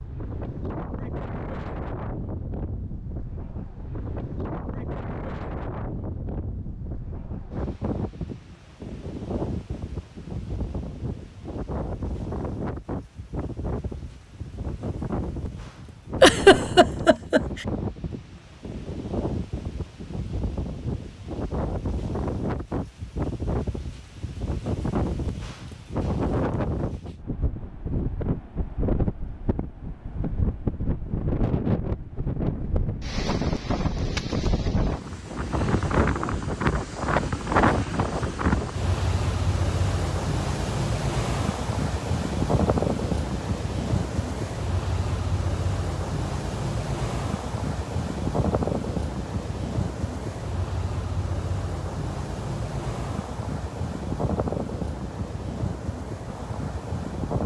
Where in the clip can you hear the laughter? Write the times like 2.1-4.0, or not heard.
16.2-17.6.